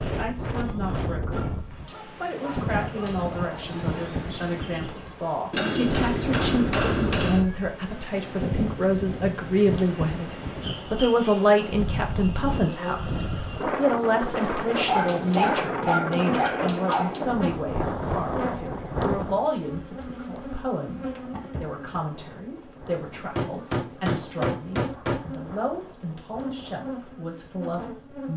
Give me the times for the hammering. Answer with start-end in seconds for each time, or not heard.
5.5-7.5, 14.6-17.2, 23.4-25.4.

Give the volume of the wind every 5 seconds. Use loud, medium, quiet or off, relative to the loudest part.
loud, loud, loud, loud, quiet, quiet.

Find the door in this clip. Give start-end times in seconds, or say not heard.
not heard.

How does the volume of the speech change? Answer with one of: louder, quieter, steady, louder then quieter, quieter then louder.
louder then quieter.